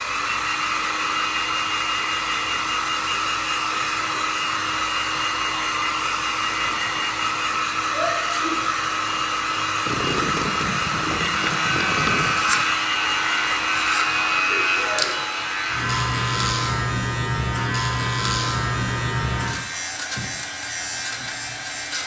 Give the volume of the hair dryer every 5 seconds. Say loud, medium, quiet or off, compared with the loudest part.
loud, loud, loud, medium, quiet.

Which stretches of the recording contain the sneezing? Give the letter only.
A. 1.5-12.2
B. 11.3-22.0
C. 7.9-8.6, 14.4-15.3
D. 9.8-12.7
C.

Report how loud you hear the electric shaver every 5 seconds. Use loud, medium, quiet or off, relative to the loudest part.
off, off, loud, loud, medium.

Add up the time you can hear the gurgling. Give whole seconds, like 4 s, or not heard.
3 s.